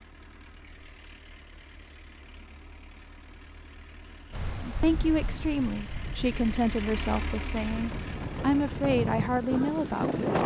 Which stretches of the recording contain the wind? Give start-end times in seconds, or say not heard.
4.3-10.4.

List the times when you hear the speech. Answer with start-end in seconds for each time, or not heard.
4.6-10.4.